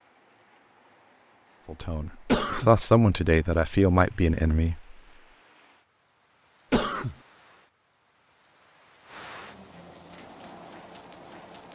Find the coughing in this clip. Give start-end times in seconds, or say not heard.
2.2-2.7, 6.7-7.2.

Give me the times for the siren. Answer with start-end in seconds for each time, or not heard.
not heard.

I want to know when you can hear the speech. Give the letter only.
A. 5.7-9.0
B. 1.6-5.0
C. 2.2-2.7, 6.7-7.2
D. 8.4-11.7
B.